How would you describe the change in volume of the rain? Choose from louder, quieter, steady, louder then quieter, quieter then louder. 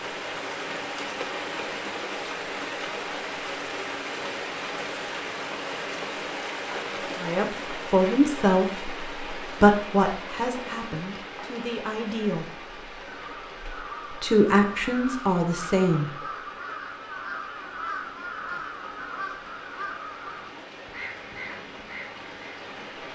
quieter.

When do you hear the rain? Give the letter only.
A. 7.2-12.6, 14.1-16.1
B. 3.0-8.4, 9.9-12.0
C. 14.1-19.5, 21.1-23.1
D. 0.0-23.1
D.